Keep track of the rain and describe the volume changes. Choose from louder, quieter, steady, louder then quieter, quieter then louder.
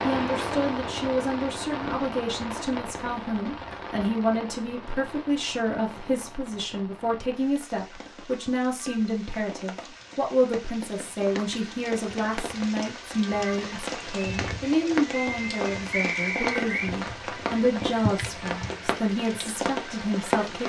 quieter then louder.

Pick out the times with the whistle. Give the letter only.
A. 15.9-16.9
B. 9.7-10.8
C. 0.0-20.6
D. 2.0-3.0
A.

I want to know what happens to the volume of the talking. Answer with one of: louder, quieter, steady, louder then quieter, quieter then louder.
steady.